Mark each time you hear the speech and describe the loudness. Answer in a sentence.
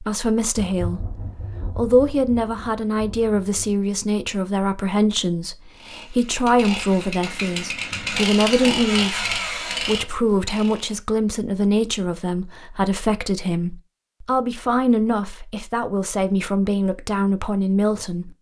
The speech can be heard from 0.0 to 18.3 s, at a steady volume.